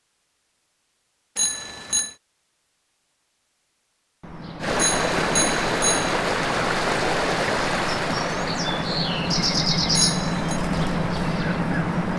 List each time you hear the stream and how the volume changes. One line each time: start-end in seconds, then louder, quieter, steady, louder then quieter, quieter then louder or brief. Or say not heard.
4.6-12.1 quieter.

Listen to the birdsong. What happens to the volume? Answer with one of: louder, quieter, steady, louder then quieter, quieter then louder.
louder.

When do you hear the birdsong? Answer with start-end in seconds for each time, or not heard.
4.2-12.1.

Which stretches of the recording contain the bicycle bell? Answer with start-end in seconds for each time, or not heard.
1.4-2.1, 4.8-6.2, 9.9-10.6.